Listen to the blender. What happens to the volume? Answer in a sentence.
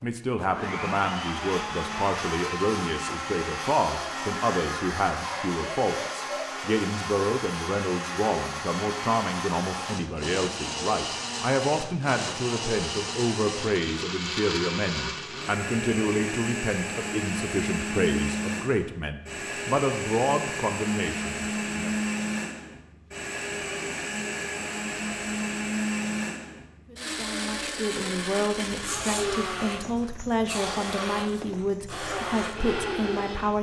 The volume of the blender stays about the same.